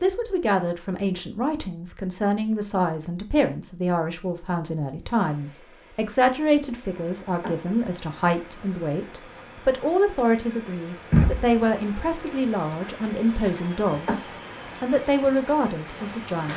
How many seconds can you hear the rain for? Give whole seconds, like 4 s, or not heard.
10 s.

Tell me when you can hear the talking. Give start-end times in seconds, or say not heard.
0.0-16.5.